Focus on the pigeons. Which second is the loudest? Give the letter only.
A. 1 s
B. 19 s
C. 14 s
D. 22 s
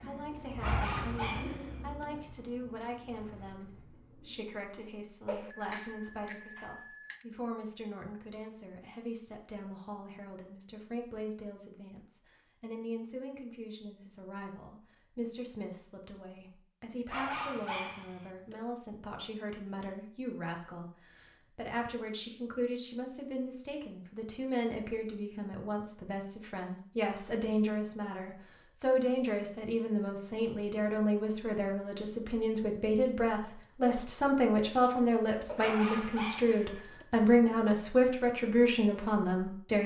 A.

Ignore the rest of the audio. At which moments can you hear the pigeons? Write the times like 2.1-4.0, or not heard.
0.0-4.5.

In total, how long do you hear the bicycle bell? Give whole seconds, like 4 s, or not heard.
4 s.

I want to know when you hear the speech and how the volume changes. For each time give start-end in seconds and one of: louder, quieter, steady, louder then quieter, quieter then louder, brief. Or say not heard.
0.0-39.8 louder.